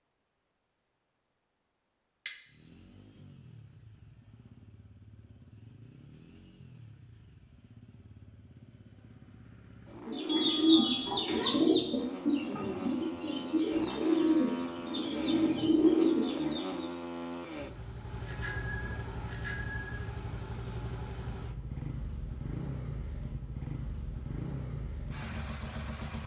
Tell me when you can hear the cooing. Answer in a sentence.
The cooing can be heard from 10.1 to 16.9 s.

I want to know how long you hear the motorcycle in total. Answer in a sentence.
You can hear the motorcycle for 24 seconds altogether.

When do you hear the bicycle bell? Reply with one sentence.
You can hear the bicycle bell from 2.2 to 2.9 s, from 10.2 to 11.2 s and from 18.2 to 20.0 s.